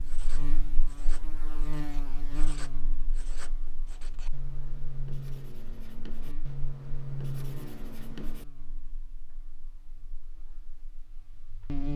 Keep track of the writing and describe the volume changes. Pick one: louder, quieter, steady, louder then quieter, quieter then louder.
louder.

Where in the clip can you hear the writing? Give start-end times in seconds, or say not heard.
0.0-8.4.